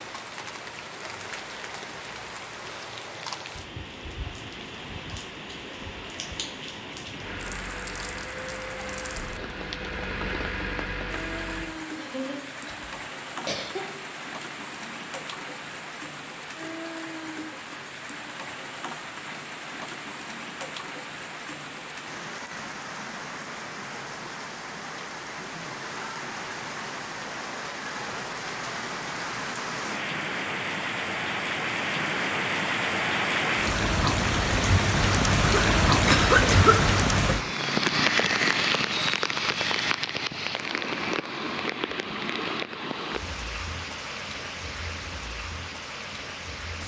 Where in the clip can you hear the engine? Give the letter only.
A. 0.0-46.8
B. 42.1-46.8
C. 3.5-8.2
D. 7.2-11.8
D.